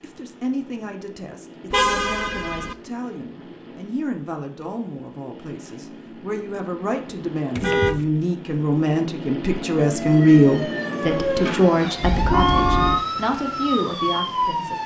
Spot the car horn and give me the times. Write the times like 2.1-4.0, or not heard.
1.7-2.8, 7.5-8.1, 12.0-13.1.